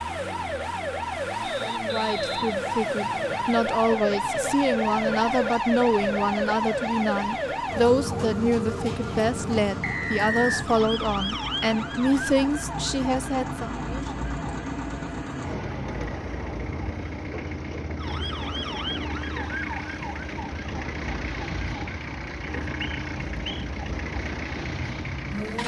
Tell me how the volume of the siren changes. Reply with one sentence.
The volume of the siren goes down.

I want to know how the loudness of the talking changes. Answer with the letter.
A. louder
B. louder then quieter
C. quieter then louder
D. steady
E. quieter
D.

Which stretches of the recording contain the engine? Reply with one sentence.
The engine can be heard from 0.0 to 25.6 s.